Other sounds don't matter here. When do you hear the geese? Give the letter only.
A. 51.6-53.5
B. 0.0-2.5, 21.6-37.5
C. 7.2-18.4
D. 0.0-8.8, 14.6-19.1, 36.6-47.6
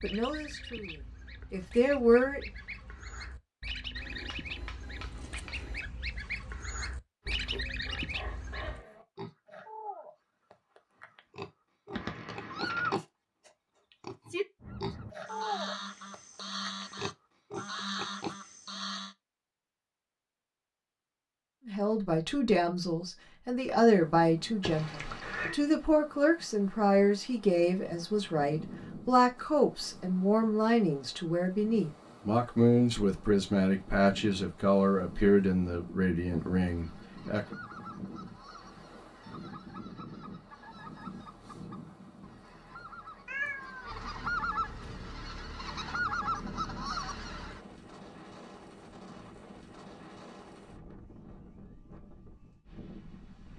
D.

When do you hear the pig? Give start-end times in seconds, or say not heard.
7.2-18.4.